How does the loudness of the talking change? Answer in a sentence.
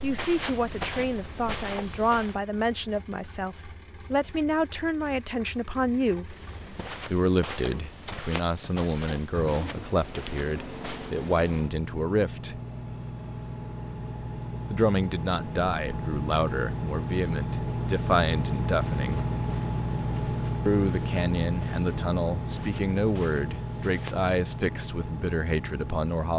The loudness of the talking stays about the same.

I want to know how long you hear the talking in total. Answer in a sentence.
The talking can be heard for 22 seconds in total.